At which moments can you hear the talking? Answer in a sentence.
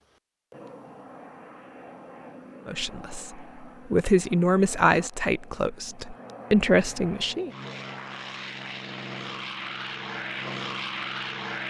You can hear the talking from 2.6 to 7.5 s.